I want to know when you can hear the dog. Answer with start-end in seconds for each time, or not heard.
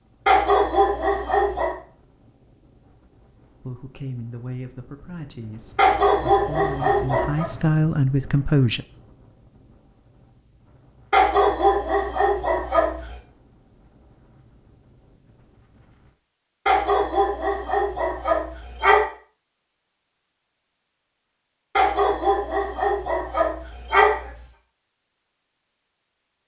0.2-1.8, 5.8-7.5, 11.1-13.2, 16.6-19.1, 21.8-24.3.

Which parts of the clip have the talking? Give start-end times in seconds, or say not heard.
3.6-8.8.